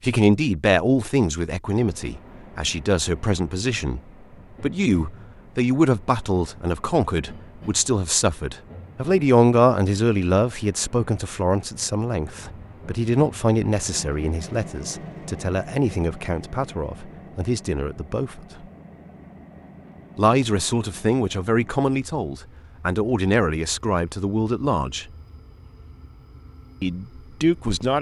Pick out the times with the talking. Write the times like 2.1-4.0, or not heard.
0.0-4.0, 4.6-18.4, 20.1-25.1, 26.8-27.9.